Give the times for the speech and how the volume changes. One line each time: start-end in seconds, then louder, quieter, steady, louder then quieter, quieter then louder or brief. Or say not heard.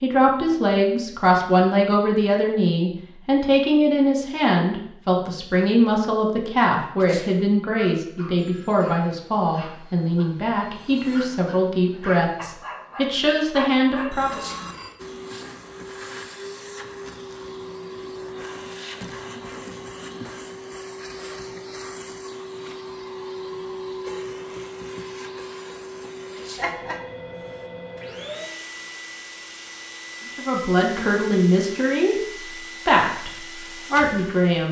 0.0-14.4 steady
30.4-32.1 brief
32.9-34.6 brief.